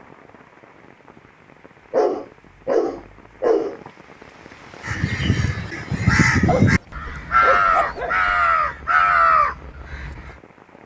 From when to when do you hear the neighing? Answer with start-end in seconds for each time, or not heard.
not heard.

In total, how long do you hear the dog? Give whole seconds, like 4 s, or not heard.
4 s.